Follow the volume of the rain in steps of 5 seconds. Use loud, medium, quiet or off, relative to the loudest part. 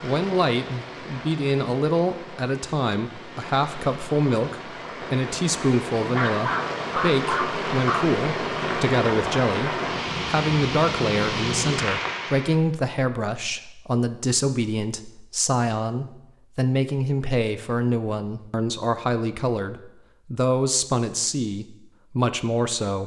medium, loud, loud, off, off.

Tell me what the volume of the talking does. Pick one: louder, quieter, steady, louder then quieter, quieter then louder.
steady.